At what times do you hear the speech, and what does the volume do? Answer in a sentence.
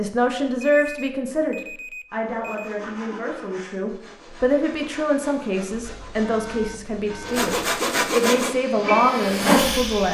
You can hear the speech from 0.0 to 10.0 s, getting quieter then louder.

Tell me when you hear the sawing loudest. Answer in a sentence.
The loudest moment of the sawing is at 8 seconds.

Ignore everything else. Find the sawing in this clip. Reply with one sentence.
You can hear the sawing from 2.0 to 8.6 s.